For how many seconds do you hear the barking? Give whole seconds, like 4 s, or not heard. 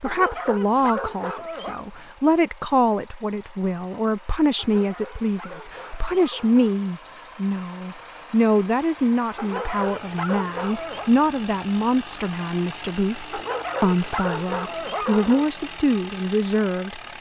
8 s.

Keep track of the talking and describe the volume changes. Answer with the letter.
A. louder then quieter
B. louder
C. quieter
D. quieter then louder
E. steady
E.